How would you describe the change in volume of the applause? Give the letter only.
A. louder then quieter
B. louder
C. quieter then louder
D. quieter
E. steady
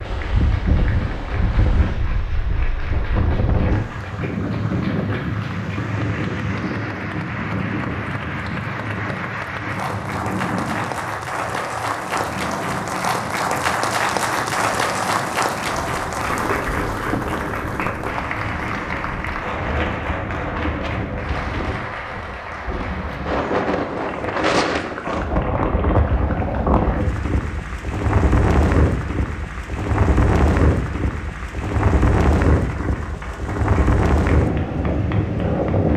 A.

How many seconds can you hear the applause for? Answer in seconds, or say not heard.
36 s.